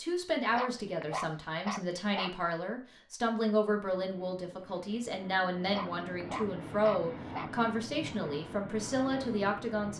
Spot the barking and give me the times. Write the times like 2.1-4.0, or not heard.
0.5-2.6, 5.7-7.7.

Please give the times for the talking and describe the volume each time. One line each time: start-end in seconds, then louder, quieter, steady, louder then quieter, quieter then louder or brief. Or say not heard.
0.0-9.9 steady.